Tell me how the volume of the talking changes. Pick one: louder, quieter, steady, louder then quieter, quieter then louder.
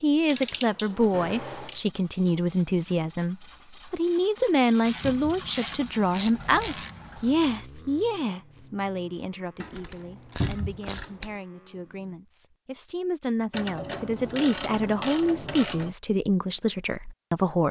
quieter then louder.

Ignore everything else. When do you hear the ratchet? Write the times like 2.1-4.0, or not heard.
0.3-1.9, 4.8-7.2, 9.6-11.3, 13.5-15.9.